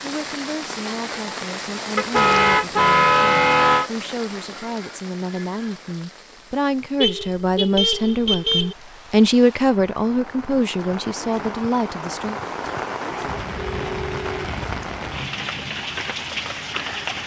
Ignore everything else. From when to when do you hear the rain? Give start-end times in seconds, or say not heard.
0.0-17.2.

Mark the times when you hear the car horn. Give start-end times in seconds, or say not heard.
1.9-3.9, 7.0-8.8, 13.6-14.5.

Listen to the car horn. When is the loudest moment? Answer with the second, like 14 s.
3 s.